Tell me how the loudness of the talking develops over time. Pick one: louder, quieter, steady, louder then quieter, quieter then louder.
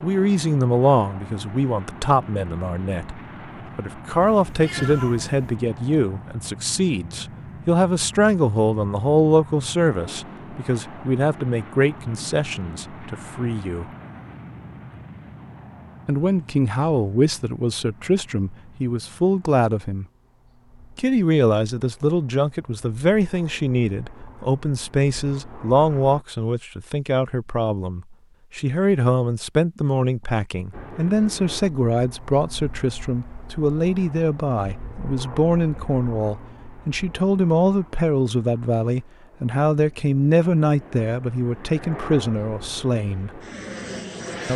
steady.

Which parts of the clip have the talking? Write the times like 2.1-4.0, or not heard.
0.0-13.8, 16.1-20.1, 20.9-43.4.